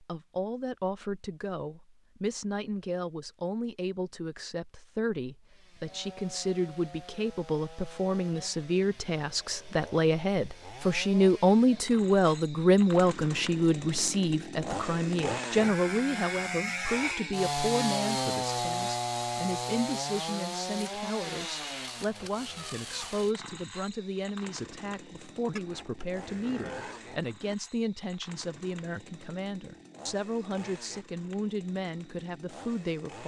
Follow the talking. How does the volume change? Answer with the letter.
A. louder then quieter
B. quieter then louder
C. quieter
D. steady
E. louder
A.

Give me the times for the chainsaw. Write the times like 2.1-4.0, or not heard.
5.5-33.2.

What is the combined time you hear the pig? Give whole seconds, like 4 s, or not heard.
2 s.